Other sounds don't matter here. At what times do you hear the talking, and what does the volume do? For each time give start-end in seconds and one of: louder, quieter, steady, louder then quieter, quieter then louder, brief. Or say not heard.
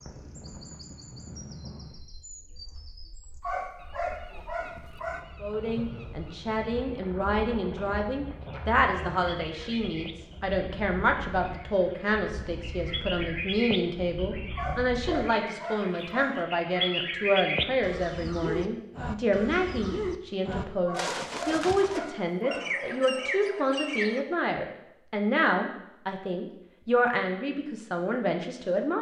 5.4-28.9 steady.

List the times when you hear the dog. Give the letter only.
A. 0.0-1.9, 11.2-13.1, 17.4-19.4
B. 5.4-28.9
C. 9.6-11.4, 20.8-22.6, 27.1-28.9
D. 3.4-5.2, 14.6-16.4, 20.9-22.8
D.